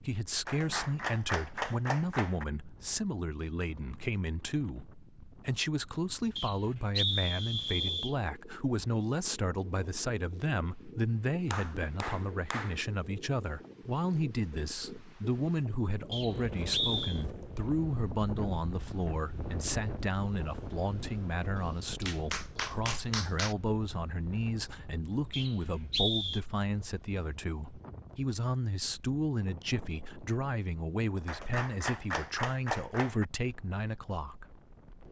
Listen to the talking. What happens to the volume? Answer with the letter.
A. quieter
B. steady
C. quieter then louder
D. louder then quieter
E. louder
B.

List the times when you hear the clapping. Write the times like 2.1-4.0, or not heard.
0.5-2.5, 11.5-12.8, 21.6-23.6, 31.2-33.2.